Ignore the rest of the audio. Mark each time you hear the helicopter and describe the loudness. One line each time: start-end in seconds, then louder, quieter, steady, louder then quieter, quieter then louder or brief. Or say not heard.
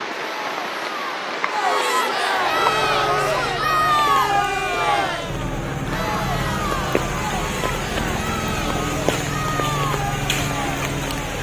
2.3-11.3 louder.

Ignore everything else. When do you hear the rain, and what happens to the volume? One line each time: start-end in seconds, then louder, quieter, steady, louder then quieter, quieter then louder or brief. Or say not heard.
0.0-11.3 quieter then louder.